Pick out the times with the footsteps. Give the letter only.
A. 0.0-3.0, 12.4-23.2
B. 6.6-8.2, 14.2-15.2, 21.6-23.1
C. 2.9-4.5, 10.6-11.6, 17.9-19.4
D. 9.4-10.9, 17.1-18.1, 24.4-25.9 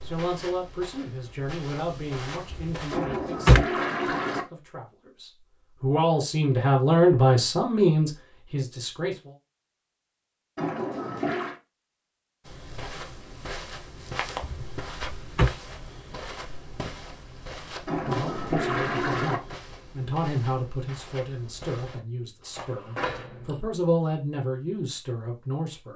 A.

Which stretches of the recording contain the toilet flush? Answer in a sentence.
You can hear the toilet flush from 2.9 to 4.5 s, from 10.6 to 11.6 s and from 17.9 to 19.4 s.